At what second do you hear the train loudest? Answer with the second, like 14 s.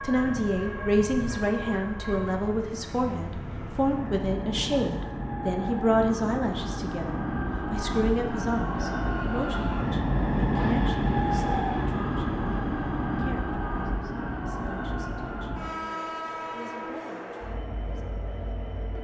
11 s.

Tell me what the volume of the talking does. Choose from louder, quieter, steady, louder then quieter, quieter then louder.
quieter.